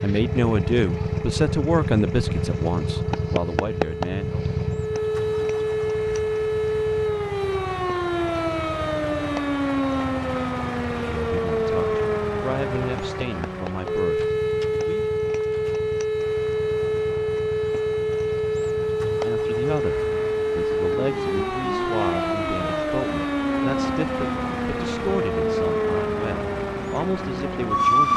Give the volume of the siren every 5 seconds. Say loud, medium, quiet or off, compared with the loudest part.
medium, loud, loud, loud, loud, loud.